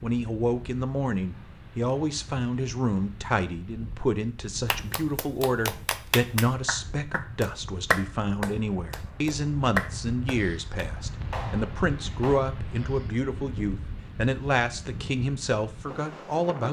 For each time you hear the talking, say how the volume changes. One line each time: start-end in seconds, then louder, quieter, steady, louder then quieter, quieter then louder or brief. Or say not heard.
0.0-16.6 steady.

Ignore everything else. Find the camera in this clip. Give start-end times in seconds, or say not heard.
not heard.